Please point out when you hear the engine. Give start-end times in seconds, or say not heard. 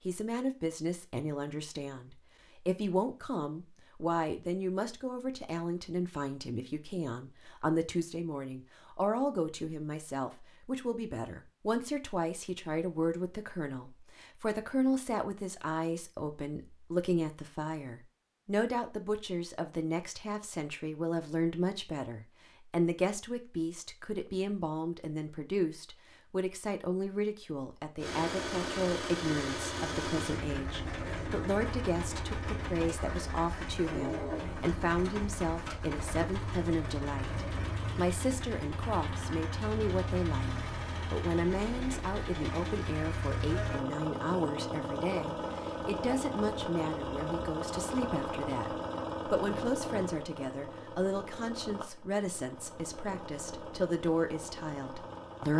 27.9-55.5.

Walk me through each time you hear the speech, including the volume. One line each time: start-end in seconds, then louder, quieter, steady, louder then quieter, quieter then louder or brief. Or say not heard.
0.1-55.5 steady.